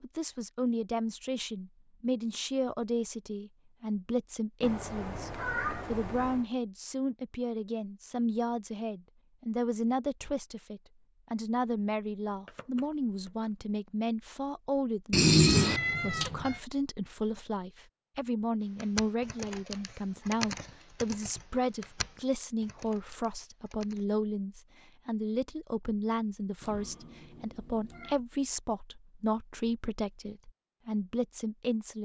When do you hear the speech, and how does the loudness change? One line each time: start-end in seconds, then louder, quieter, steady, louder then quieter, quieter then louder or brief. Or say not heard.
0.0-31.9 steady.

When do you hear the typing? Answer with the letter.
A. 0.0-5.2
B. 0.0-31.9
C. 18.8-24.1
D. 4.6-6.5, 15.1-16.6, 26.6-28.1
C.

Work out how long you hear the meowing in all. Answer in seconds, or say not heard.
5 s.